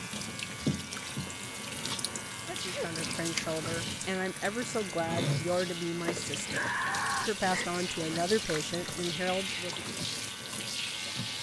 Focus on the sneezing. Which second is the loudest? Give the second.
7 s.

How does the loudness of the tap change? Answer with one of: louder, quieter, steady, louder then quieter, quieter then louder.
steady.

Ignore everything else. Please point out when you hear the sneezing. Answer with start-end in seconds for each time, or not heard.
2.5-2.9, 6.4-7.7.